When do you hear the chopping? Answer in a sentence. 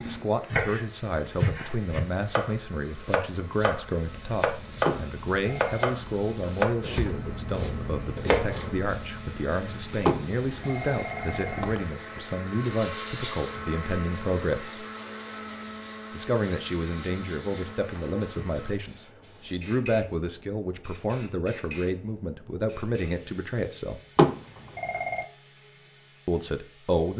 The chopping can be heard from 0.5 to 8.8 s.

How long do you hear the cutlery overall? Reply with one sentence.
You can't hear the cutlery here.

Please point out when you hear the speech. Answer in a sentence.
You can hear the speech from 0.1 to 14.8 s, from 16.1 to 24.0 s and from 26.2 to 27.1 s.